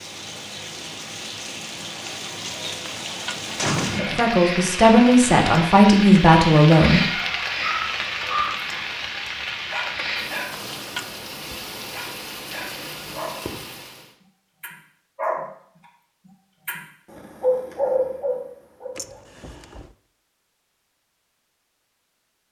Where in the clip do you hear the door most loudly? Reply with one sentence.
The loudest moment of the door is at 4 seconds.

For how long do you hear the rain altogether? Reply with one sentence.
You can hear the rain for 14 seconds altogether.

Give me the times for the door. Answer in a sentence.
You can hear the door from 2.8 to 4.3 s, from 10.5 to 11.2 s and from 18.9 to 19.9 s.